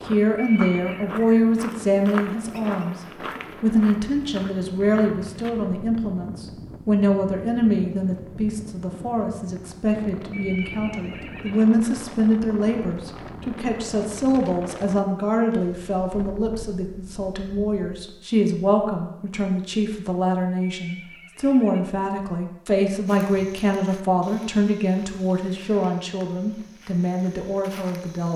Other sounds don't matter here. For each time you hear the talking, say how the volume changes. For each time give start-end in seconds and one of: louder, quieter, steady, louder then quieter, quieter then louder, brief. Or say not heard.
0.1-3.0 brief
3.6-28.3 steady.